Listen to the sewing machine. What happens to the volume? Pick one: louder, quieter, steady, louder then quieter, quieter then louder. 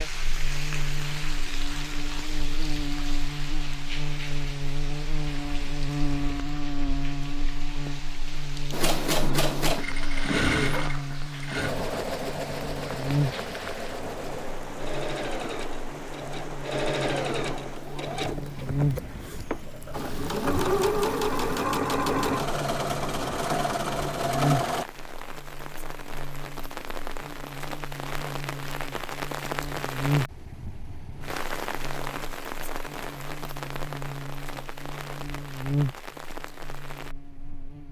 quieter then louder.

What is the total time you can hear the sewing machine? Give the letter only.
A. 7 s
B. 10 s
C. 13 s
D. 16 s
D.